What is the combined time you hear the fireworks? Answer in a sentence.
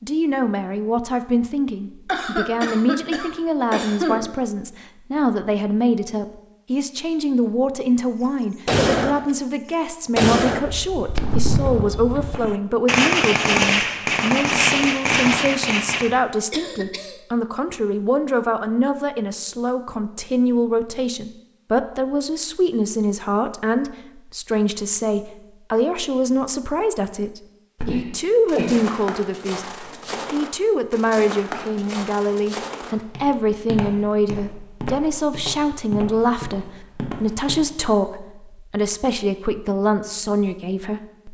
You can hear the fireworks for 7 seconds altogether.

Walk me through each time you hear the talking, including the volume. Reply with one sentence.
The talking can be heard from 0.0 to 41.3 s, at a steady volume.